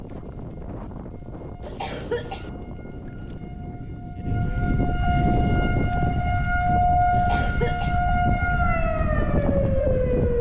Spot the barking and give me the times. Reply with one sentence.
You can't hear the barking here.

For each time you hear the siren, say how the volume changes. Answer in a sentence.
You can hear the siren from 0.0 to 10.3 s, getting louder.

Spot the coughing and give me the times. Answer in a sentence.
The coughing can be heard from 1.6 to 2.5 s and from 7.1 to 8.0 s.